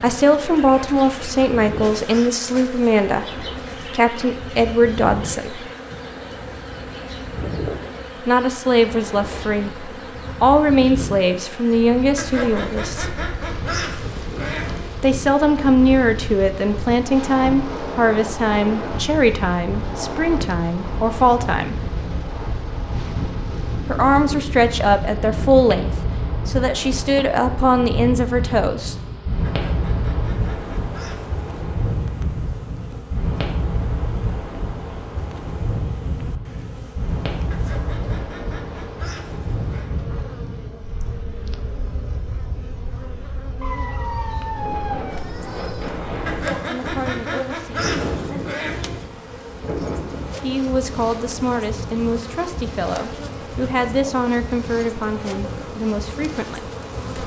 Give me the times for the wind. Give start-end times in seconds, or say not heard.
0.0-57.2.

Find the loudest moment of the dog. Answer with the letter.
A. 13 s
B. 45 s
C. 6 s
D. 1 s
B.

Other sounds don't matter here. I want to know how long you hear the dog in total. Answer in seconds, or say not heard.
2 s.